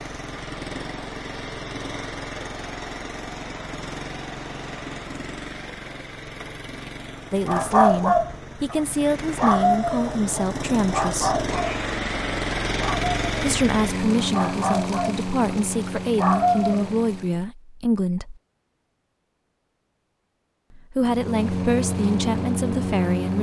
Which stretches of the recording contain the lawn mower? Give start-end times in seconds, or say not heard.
0.0-17.5, 21.0-23.3.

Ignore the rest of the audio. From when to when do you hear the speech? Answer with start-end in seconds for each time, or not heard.
7.3-11.4, 13.4-18.4, 20.7-23.3.